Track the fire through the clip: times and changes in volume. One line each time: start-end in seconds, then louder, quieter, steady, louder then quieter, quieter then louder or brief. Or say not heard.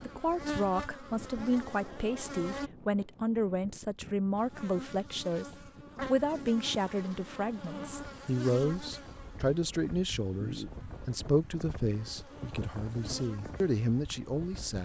not heard.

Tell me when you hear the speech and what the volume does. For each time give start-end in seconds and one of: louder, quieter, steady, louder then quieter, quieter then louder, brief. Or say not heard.
0.0-14.8 steady.